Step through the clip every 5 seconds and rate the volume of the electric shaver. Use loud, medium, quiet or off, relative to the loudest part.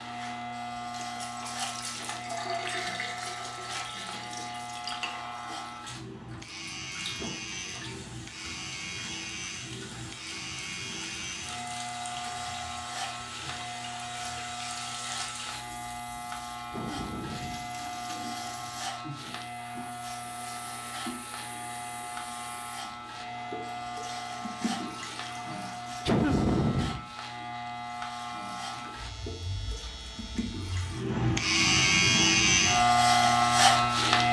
quiet, quiet, quiet, quiet, quiet, quiet, loud.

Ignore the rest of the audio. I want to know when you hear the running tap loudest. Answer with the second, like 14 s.
3 s.